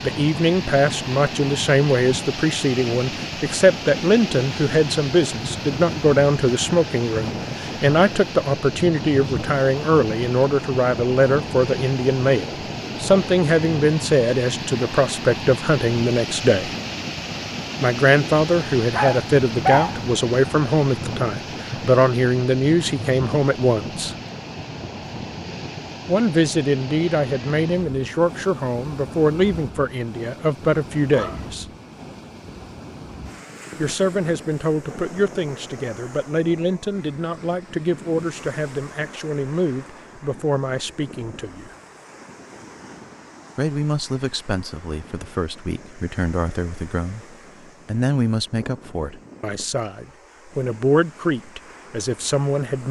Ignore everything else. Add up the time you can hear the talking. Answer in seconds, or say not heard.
46 s.